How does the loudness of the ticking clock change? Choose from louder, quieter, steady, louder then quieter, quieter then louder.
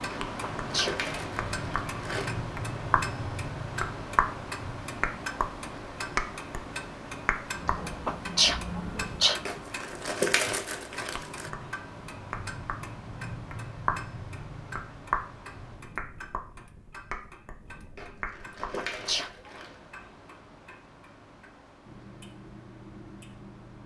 quieter.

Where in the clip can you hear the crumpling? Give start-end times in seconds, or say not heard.
0.1-2.3, 9.4-11.5, 17.9-19.8.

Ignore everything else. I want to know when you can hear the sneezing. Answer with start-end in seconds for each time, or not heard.
0.4-1.0, 8.1-9.4, 18.8-19.5.